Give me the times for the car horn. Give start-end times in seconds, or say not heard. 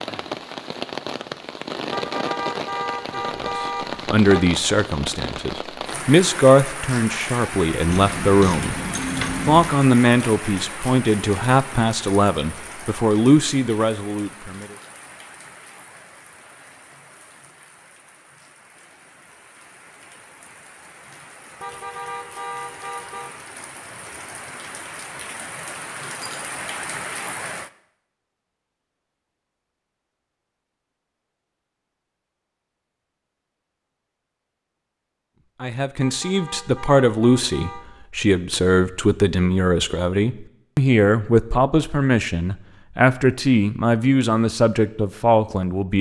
1.9-4.5, 21.6-23.3, 36.0-37.9.